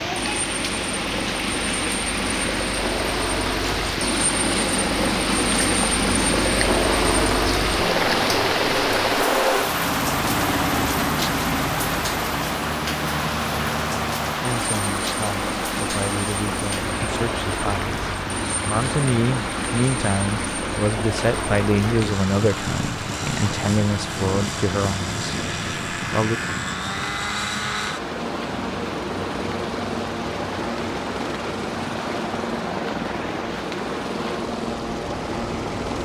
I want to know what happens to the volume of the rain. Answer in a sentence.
The volume of the rain goes down.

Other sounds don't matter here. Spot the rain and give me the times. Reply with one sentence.
You can hear the rain from 0.0 to 36.0 s.